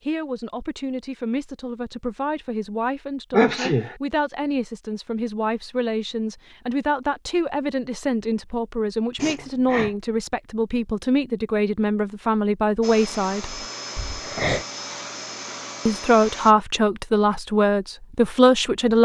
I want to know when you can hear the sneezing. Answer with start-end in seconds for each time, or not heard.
3.3-4.0, 9.2-9.9, 13.9-14.7.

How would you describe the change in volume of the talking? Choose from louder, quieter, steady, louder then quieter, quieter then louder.
louder.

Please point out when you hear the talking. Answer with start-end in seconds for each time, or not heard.
0.0-13.6, 15.8-18.9.